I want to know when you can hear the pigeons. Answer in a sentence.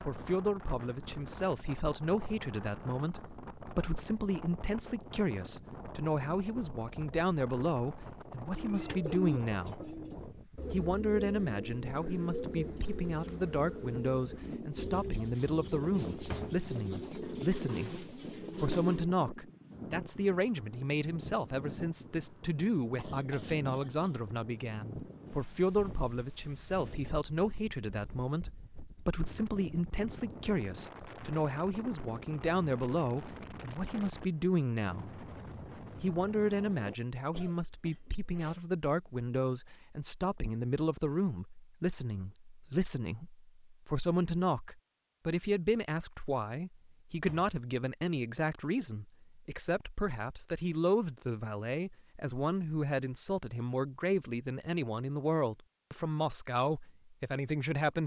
The pigeons can be heard from 8.6 to 19.1 s.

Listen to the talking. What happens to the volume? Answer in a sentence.
The loudness of the talking stays about the same.